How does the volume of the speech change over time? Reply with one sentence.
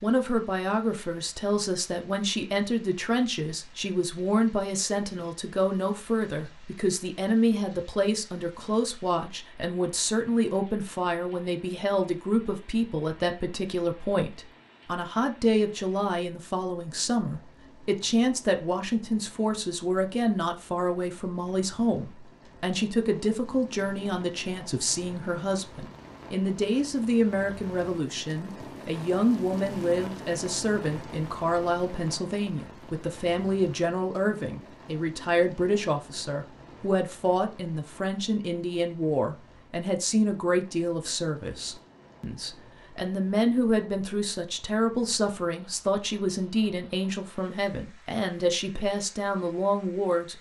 The volume of the speech stays about the same.